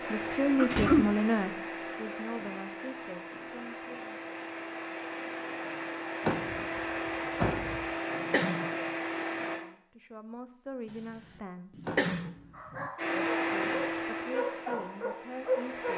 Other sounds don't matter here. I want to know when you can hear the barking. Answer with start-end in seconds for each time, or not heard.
12.5-15.9.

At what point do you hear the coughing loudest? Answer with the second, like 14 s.
1 s.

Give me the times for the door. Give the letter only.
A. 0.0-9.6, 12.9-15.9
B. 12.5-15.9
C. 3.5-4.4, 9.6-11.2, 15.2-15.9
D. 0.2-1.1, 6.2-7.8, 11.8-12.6
D.